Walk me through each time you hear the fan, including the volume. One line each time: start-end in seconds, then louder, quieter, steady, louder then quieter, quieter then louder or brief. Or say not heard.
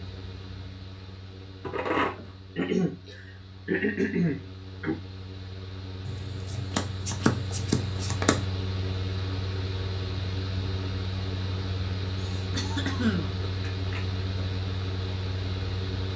0.0-16.1 louder.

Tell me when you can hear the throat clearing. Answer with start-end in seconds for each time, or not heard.
2.1-5.0, 12.2-13.3.